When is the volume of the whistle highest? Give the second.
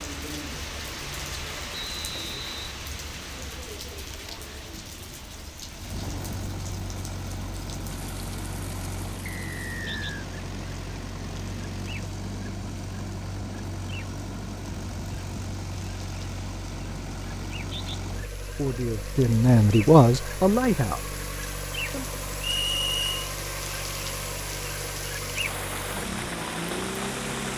23 s.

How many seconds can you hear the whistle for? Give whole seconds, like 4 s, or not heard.
3 s.